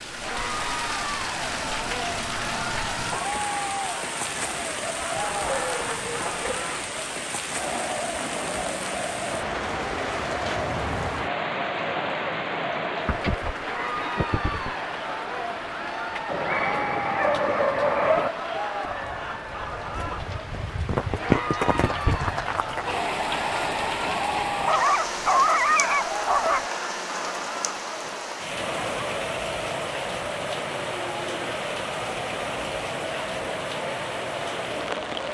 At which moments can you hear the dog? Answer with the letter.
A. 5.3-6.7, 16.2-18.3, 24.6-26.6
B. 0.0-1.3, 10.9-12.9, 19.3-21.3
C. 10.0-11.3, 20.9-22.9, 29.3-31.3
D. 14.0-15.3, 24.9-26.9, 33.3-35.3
A.